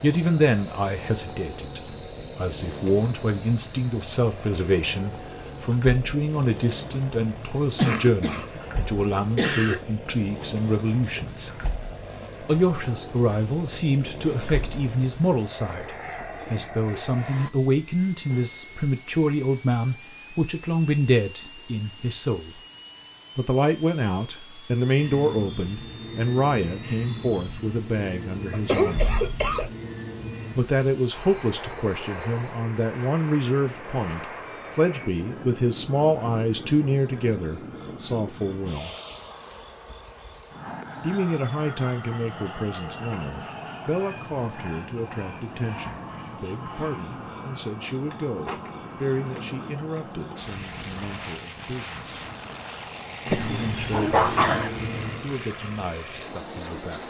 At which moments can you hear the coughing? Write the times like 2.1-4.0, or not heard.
7.8-8.6, 9.3-9.8, 28.5-29.7, 53.3-54.8.